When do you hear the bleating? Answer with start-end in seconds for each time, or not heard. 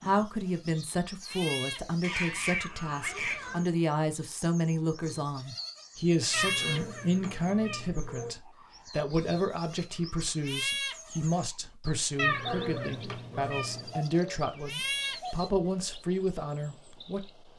0.1-2.2, 5.0-7.0, 9.3-11.4, 13.4-15.4.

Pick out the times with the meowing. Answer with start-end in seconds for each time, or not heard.
2.0-3.6, 6.3-8.3, 12.2-13.9.